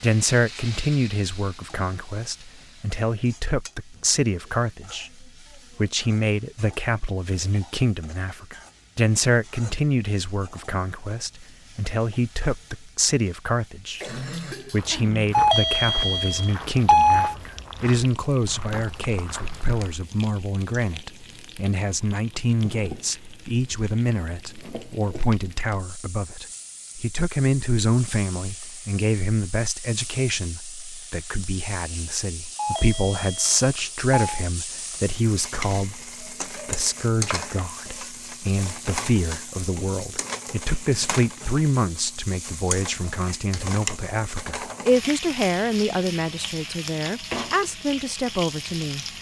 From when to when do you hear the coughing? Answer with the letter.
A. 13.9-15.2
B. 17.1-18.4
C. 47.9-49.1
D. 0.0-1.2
A.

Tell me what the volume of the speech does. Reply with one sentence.
The loudness of the speech stays about the same.